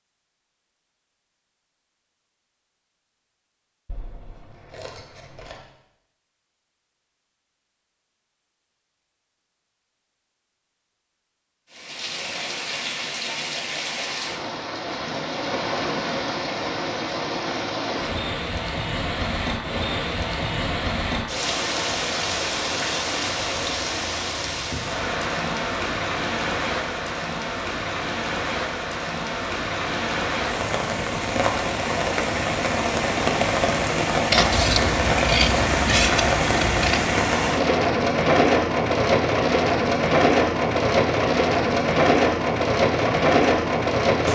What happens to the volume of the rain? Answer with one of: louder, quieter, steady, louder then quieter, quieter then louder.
louder.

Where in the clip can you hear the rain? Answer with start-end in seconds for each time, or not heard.
11.7-44.3.